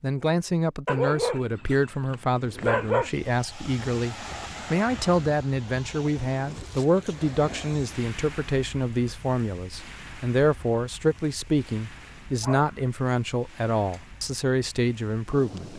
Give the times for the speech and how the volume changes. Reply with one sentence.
The speech can be heard from 0.0 to 15.7 s, at a steady volume.